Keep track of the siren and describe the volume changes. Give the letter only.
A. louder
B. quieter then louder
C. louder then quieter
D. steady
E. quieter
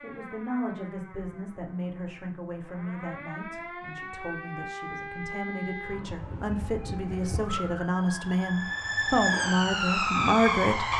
A.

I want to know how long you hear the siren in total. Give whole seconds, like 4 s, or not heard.
11 s.